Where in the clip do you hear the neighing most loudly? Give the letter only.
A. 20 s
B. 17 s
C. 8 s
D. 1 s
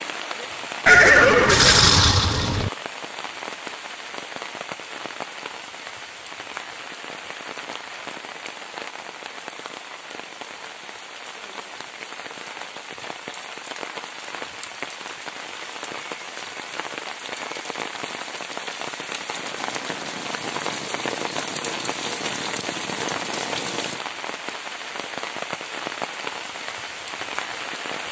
D.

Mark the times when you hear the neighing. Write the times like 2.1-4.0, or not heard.
0.8-2.7.